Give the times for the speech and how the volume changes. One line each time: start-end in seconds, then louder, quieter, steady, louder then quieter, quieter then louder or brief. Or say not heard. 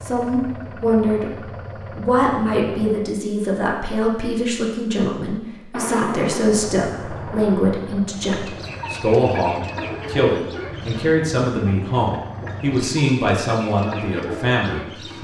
0.0-1.3 brief
1.9-15.1 steady.